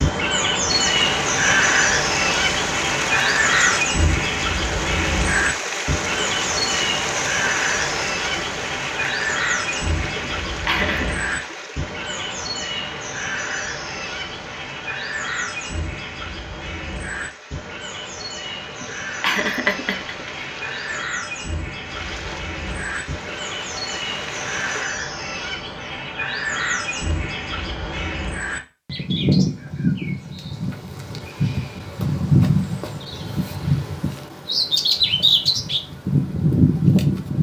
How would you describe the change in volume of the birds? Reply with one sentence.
The loudness of the birds goes down, then up.